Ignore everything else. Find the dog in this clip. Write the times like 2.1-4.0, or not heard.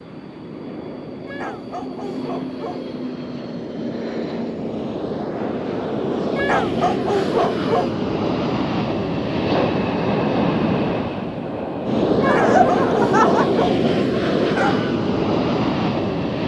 1.2-3.0, 6.3-8.0, 12.2-14.9.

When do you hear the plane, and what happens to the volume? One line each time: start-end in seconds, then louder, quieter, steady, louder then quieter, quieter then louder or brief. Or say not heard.
0.0-16.4 louder.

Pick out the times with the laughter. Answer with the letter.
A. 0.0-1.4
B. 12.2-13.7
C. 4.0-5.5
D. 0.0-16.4
B.